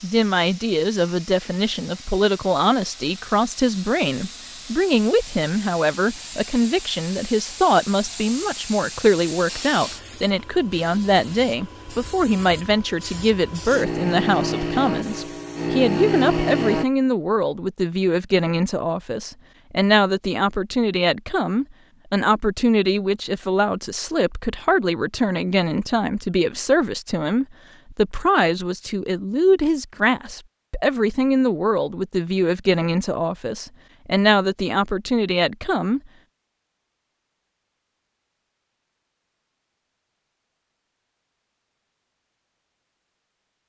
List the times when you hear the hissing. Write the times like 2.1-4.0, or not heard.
0.0-16.9.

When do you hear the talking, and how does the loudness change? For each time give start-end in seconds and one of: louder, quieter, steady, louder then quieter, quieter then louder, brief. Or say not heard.
0.0-36.0 steady.